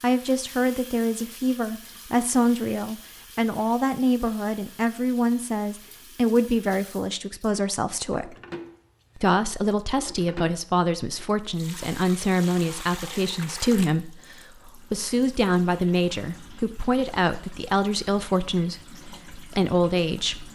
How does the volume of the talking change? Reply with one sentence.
The loudness of the talking stays about the same.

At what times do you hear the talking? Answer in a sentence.
You can hear the talking from 0.0 to 8.3 s and from 9.2 to 20.4 s.